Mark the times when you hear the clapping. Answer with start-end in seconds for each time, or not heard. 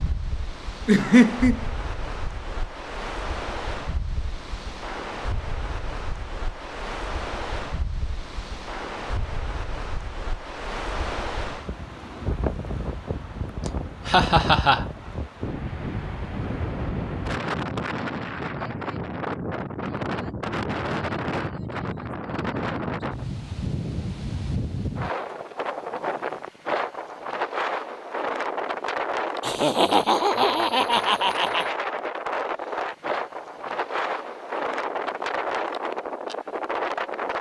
not heard.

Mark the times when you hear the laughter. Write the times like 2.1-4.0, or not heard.
0.8-1.6, 13.7-14.8, 29.4-31.8.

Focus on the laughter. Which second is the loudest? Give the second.
1 s.